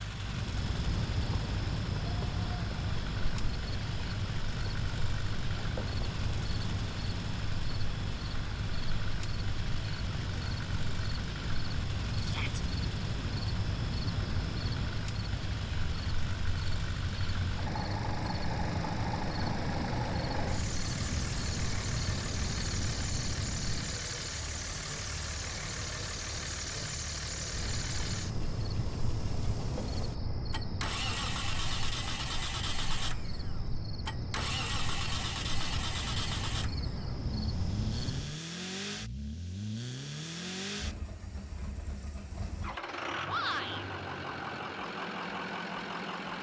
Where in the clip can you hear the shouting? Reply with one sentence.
You can hear the shouting from 12.2 to 12.6 s and from 43.2 to 43.9 s.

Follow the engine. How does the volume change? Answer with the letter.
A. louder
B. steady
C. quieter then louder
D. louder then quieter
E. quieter
B.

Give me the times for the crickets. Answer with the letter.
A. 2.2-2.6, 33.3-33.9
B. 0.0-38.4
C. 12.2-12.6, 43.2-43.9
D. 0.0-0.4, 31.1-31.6
B.